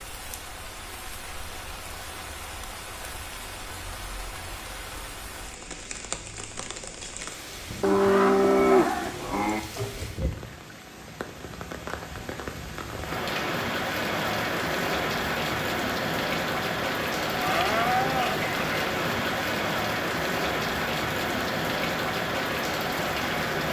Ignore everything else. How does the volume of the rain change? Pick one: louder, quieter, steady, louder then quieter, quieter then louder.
louder.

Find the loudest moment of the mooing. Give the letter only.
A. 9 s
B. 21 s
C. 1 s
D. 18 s
A.